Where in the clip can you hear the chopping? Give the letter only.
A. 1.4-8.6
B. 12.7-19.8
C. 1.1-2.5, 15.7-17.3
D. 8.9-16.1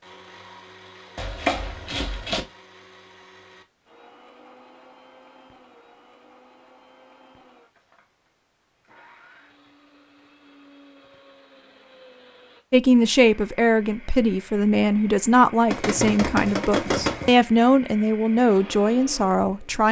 C.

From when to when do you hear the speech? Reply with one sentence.
You can hear the speech from 12.7 to 19.8 s.